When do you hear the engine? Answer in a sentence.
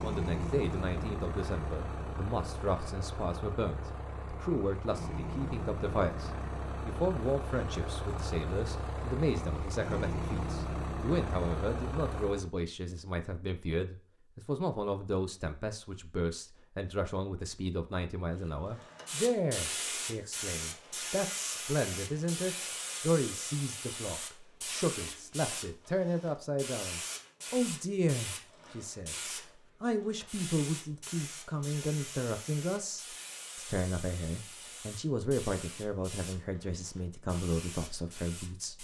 You can hear the engine from 0.0 to 12.5 s.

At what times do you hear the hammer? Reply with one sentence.
The hammer can't be heard in this clip.